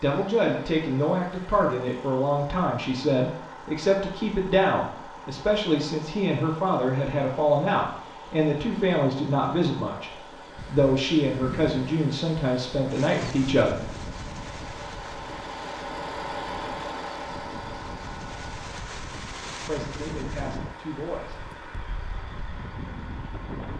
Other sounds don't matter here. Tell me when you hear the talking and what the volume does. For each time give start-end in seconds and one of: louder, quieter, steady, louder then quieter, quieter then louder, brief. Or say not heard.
0.0-13.8 steady
19.5-21.4 brief.